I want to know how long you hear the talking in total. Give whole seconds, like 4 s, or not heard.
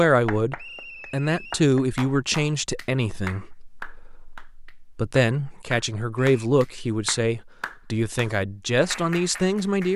10 s.